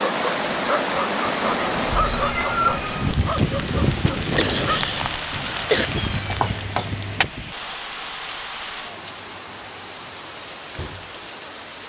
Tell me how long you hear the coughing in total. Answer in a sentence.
You can hear the coughing for 2 seconds altogether.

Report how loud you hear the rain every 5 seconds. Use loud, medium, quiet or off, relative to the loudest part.
loud, medium, medium.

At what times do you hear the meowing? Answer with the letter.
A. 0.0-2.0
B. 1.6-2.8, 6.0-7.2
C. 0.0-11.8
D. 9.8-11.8
B.